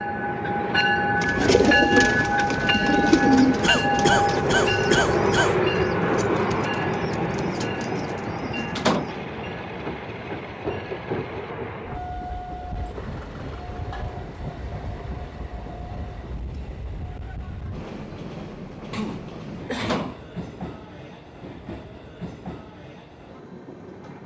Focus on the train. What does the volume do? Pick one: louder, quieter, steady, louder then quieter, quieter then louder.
quieter.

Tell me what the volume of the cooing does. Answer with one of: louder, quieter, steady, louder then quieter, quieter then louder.
quieter.